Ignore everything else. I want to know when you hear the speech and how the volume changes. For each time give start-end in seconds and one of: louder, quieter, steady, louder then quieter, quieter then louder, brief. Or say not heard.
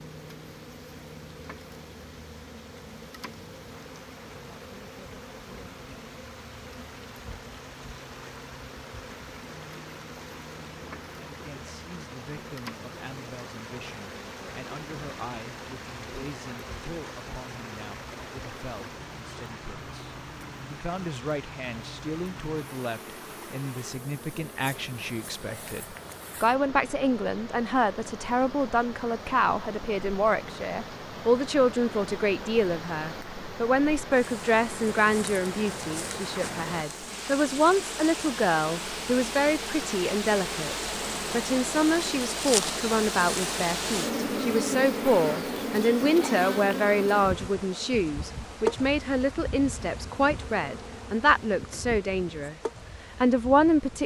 11.2-52.5 louder
53.2-54.0 brief.